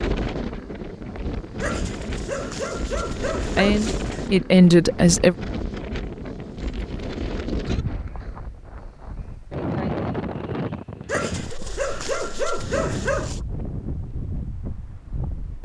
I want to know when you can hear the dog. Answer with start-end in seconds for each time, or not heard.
1.6-4.3, 11.1-13.4.